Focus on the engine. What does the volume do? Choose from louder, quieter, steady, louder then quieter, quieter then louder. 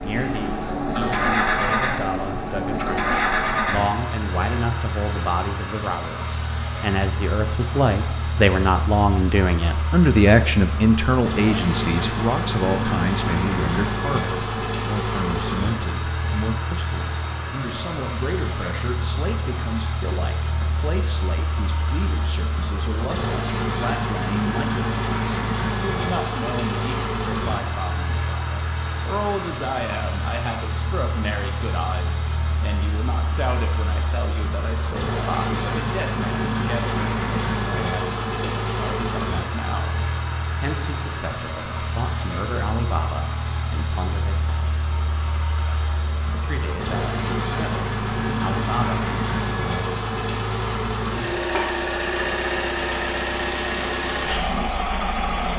steady.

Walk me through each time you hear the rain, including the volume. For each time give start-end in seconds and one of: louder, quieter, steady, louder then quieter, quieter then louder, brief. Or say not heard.
not heard.